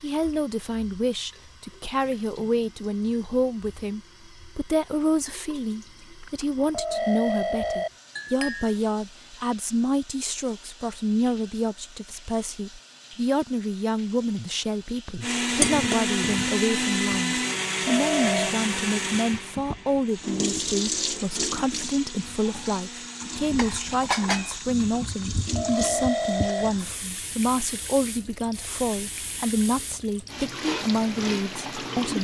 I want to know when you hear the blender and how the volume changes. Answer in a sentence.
The blender can be heard from 15.2 to 24.1 s, getting quieter.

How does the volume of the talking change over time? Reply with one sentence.
The volume of the talking stays about the same.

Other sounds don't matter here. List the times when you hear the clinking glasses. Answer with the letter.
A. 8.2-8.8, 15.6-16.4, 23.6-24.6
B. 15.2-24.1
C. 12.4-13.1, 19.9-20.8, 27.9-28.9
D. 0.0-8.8
A.